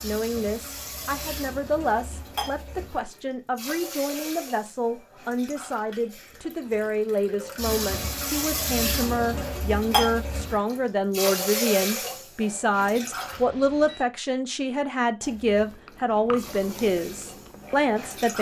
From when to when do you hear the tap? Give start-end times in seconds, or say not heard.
0.0-13.4, 15.2-18.3.